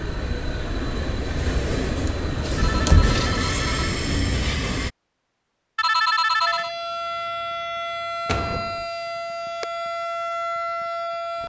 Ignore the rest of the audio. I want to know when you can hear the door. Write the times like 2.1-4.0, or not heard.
2.5-3.4, 8.2-8.8.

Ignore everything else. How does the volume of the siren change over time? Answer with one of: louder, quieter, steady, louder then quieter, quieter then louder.
steady.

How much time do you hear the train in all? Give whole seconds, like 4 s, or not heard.
5 s.